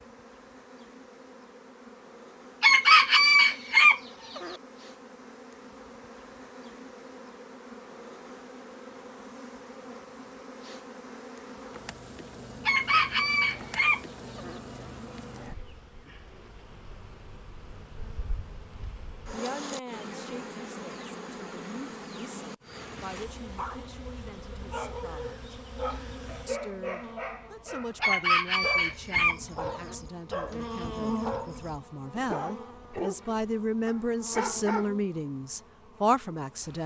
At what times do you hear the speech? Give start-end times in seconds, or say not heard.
19.3-25.4, 26.4-36.8.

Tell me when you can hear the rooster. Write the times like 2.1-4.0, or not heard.
2.6-4.5, 12.7-14.6, 28.0-29.9.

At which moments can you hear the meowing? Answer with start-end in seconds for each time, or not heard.
not heard.